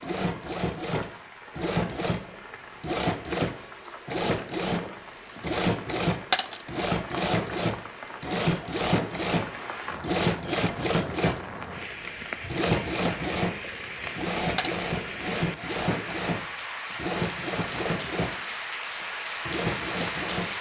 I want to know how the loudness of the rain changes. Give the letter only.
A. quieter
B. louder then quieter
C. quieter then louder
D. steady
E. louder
E.